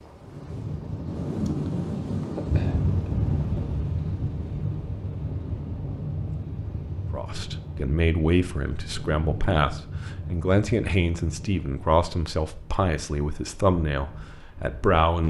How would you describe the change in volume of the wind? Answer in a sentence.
The volume of the wind goes down.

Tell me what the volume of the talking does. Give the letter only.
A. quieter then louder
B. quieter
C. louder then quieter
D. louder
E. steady
E.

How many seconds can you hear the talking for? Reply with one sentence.
You can hear the talking for 8 seconds altogether.